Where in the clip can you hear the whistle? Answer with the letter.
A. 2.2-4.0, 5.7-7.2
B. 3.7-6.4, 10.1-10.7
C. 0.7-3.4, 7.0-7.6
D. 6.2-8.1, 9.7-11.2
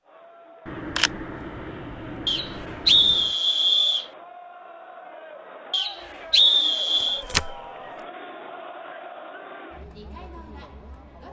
A.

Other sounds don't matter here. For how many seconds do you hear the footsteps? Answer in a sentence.
The footsteps can't be heard in this clip.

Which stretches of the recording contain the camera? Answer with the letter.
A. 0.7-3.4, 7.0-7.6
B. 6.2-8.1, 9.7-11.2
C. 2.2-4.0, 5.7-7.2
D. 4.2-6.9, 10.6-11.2
A.